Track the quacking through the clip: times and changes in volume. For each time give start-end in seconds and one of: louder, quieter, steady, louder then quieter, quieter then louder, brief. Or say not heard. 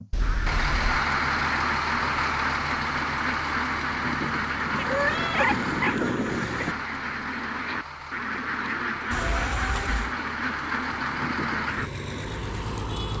0.2-11.9 steady.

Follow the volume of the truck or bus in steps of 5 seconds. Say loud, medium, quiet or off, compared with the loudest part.
loud, medium, medium.